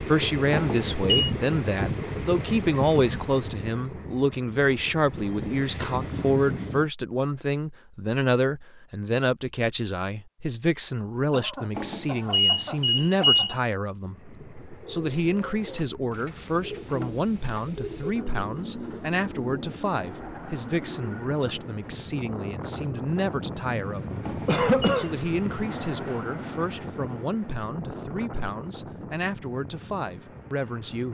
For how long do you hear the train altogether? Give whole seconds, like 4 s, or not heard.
24 s.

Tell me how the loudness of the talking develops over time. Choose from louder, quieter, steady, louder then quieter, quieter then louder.
quieter.